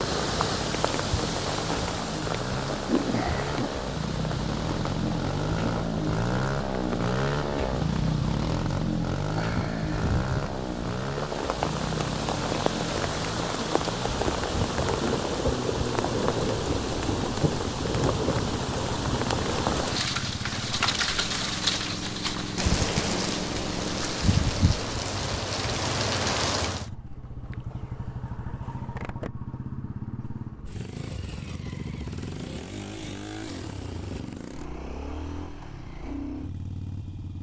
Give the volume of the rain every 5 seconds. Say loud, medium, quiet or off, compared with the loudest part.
loud, medium, loud, loud, loud, loud, off, off.